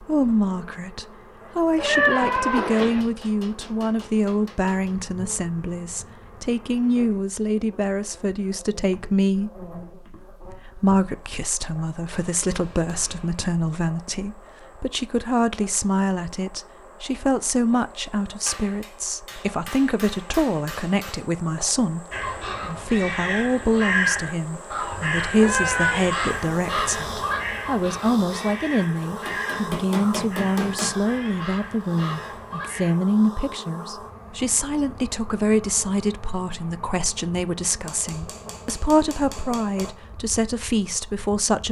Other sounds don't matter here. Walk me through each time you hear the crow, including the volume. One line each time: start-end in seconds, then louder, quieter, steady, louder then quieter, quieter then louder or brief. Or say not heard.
22.1-33.0 quieter.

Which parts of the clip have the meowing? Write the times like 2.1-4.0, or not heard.
1.8-3.0, 24.9-26.1.